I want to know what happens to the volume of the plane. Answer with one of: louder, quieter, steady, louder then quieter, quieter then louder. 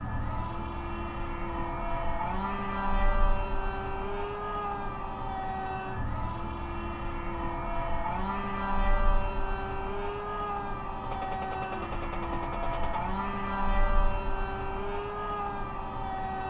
steady.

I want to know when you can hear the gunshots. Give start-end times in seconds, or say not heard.
11.0-13.0.